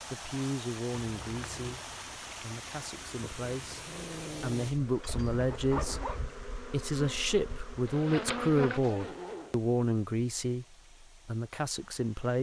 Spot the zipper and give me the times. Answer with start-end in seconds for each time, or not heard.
1.0-1.9, 5.0-6.2, 8.7-9.6.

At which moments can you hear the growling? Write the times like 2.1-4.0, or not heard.
3.1-4.8.